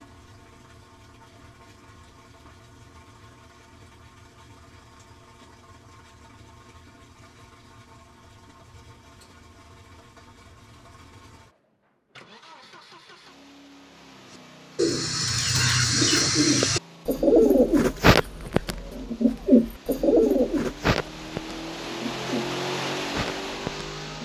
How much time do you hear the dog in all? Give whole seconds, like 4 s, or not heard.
not heard.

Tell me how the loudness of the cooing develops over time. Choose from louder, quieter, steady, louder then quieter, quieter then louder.
quieter.